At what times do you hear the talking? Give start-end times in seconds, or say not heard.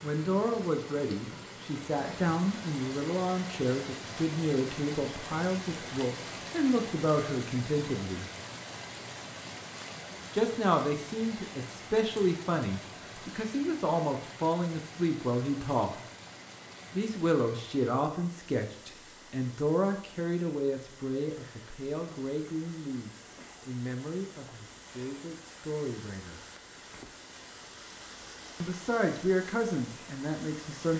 0.0-8.2, 10.3-16.0, 16.9-26.4, 28.6-30.9.